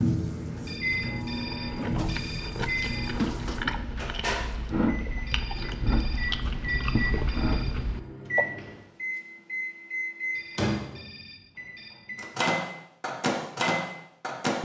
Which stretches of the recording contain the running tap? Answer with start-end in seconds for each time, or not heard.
0.0-3.6.